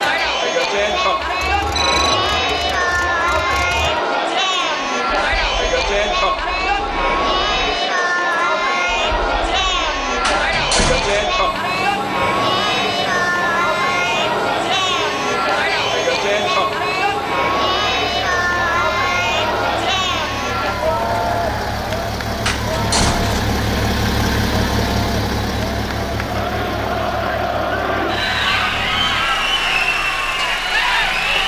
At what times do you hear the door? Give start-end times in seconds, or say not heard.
10.2-11.3, 22.4-23.5.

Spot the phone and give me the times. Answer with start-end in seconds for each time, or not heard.
1.7-2.2.